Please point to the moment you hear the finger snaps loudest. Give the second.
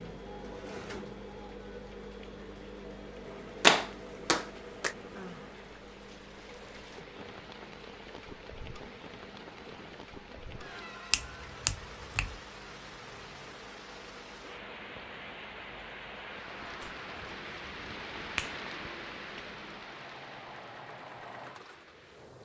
4 s.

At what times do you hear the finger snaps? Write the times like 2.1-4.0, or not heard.
3.6-5.0, 11.1-12.4, 16.9-18.6.